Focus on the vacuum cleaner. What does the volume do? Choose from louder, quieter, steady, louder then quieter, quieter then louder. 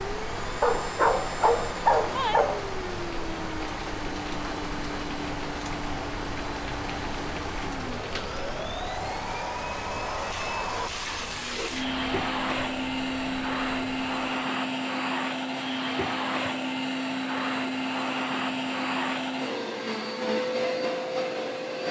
louder.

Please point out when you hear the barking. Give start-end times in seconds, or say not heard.
0.6-2.6.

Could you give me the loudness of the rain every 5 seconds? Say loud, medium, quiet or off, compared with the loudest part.
loud, loud, medium, off, off.